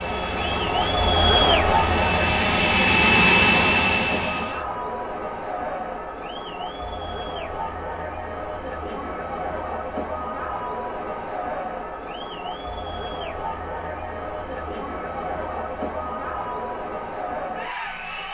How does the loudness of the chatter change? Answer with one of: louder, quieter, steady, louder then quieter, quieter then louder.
quieter.